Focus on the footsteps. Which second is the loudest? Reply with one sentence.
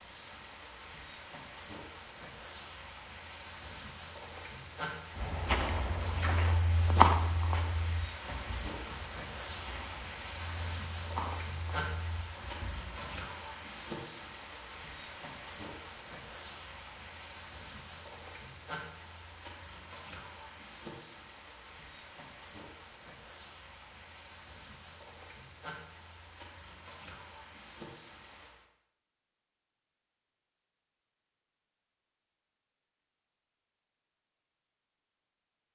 The loudest moment of the footsteps is at 7 seconds.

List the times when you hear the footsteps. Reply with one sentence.
The footsteps can be heard from 5.2 to 13.2 s.